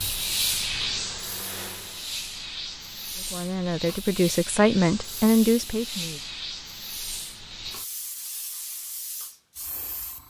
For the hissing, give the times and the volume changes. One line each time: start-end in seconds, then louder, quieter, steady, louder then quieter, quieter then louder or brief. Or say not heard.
0.0-10.2 quieter.